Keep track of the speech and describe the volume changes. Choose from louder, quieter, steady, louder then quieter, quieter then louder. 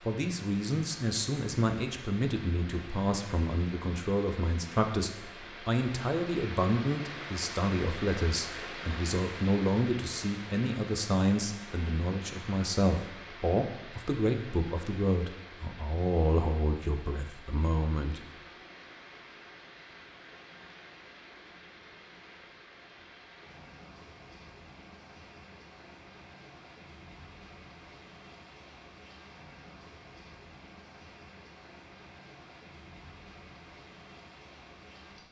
steady.